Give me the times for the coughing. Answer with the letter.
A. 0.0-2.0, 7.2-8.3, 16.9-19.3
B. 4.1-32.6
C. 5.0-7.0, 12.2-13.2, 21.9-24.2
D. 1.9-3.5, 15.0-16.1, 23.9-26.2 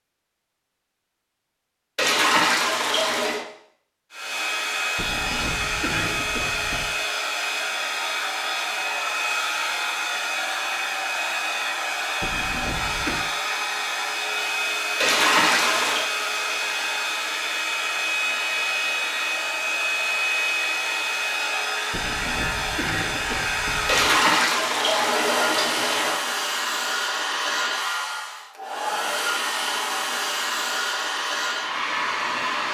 C.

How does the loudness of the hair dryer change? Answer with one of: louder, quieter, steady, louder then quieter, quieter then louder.
steady.